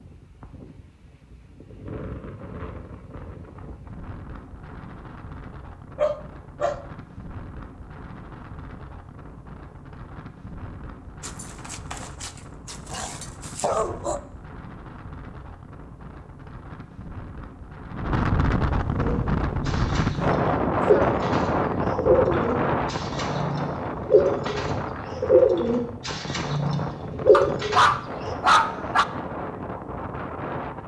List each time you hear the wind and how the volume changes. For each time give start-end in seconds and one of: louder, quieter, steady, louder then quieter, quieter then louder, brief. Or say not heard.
0.0-30.8 louder then quieter.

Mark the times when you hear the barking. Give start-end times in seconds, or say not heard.
6.0-6.8, 11.2-14.2, 27.3-29.1.